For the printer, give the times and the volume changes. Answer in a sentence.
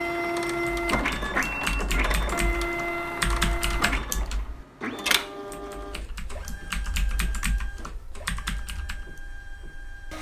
The printer can be heard from 0.0 to 10.1 s, getting quieter.